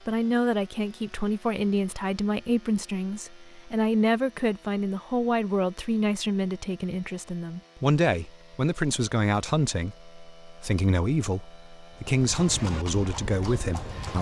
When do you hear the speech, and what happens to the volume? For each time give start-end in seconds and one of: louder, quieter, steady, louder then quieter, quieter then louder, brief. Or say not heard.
0.1-14.1 steady.